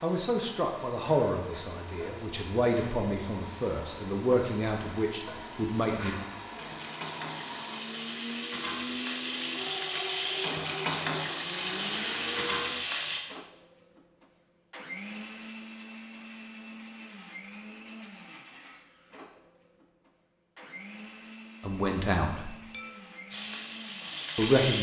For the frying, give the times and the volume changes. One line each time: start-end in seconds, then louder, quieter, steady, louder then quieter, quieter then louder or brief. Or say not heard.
0.0-13.2 louder
23.3-24.7 brief.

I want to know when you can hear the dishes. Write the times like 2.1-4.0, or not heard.
22.7-23.2.